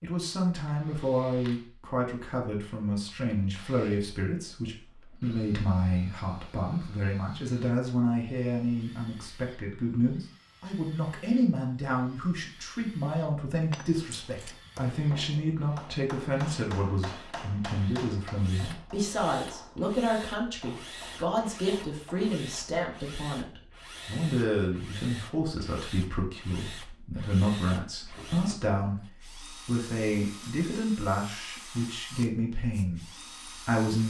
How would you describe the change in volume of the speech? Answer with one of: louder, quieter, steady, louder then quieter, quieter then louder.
steady.